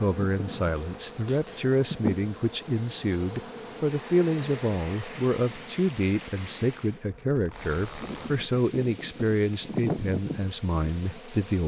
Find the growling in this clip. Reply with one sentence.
The growling can't be heard in this clip.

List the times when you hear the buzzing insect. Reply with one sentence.
The buzzing insect can be heard from 0.0 to 11.6 s.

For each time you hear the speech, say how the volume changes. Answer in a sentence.
You can hear the speech from 0.0 to 11.6 s, at a steady volume.